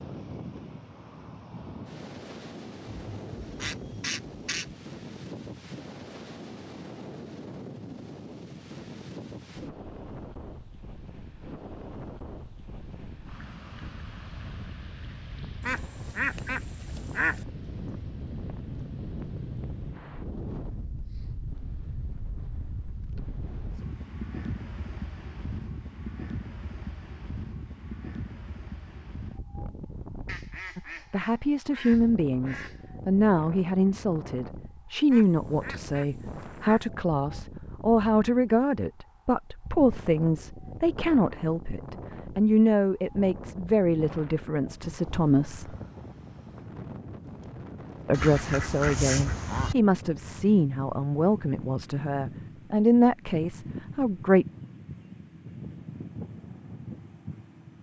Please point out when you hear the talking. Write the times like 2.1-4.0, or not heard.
30.8-45.8, 48.0-54.5.